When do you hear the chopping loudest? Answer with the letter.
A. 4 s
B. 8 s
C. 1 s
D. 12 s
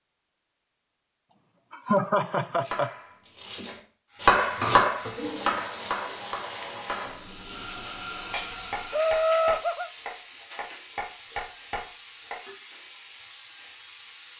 A.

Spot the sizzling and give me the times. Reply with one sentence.
The sizzling can be heard from 4.1 to 14.3 s.